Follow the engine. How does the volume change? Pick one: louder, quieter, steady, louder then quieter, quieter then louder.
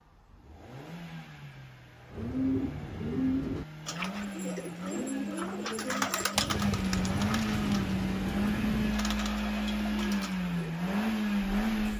louder.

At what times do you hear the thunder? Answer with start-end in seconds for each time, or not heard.
6.3-8.9.